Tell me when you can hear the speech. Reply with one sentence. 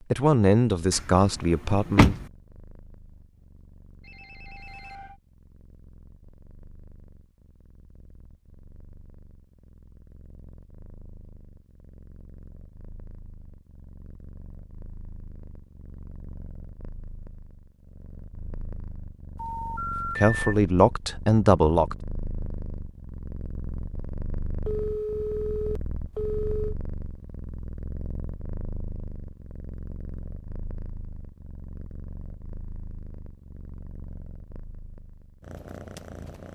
You can hear the speech from 0.1 to 2.1 s and from 20.1 to 21.9 s.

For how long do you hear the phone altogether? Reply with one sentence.
The phone can be heard for 4 seconds in total.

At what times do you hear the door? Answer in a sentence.
You can hear the door from 0.9 to 2.2 s.